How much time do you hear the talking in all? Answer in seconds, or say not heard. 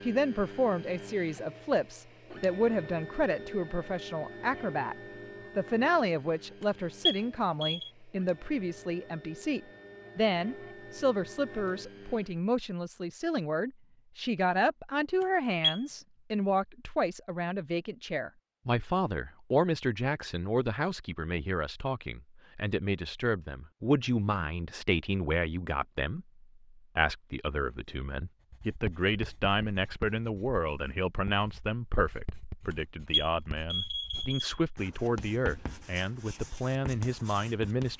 37 s.